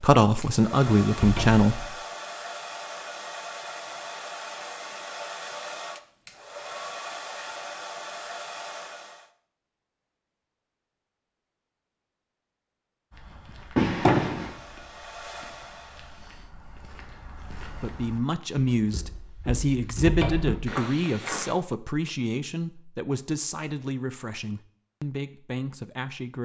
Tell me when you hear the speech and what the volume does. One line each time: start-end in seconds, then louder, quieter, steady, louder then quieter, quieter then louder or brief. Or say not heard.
0.0-1.9 brief
17.8-26.4 quieter.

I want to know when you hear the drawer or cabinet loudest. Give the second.
14 s.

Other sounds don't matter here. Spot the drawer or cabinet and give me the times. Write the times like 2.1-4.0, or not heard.
1.1-1.6, 13.8-14.6, 20.0-20.6.